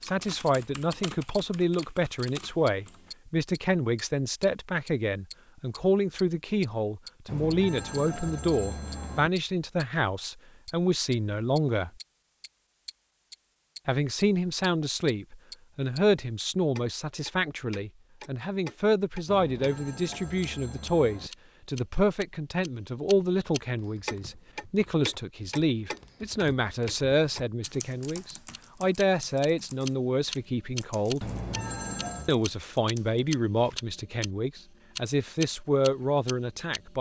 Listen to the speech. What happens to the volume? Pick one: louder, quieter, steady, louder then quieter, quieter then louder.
steady.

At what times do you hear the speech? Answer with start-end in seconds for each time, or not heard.
0.0-11.9, 13.8-31.3, 32.2-36.9.